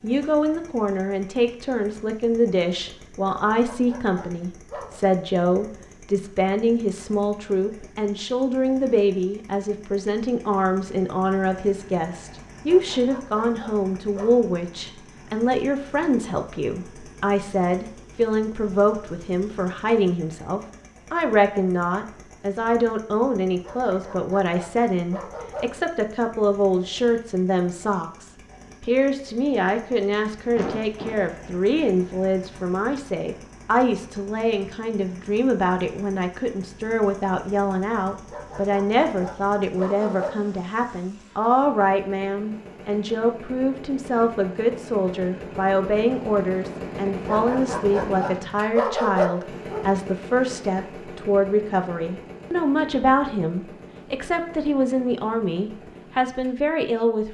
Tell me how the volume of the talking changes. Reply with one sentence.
The volume of the talking stays about the same.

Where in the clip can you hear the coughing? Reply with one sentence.
The coughing can be heard from 30.6 to 31.2 s.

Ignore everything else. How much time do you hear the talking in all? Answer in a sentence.
You can hear the talking for 57 seconds altogether.